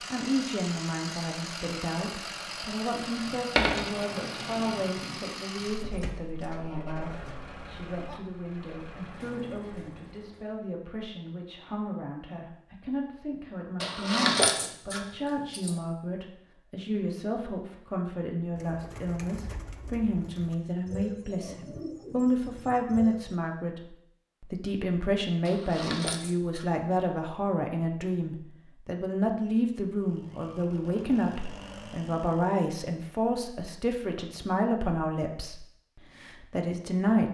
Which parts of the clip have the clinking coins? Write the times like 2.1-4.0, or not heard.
3.5-4.7, 13.8-15.8, 25.4-26.6.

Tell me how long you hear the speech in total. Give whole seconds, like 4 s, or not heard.
37 s.